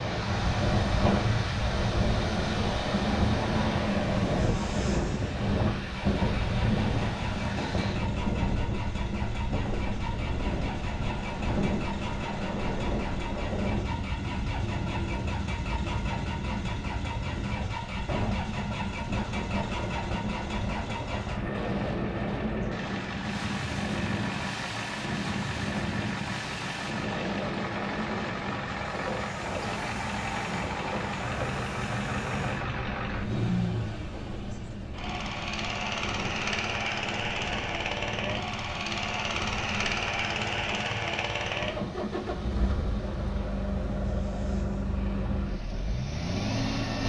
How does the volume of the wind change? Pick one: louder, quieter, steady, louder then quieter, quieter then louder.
quieter.